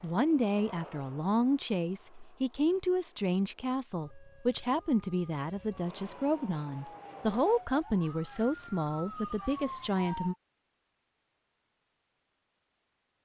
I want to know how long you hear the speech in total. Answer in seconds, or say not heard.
10 s.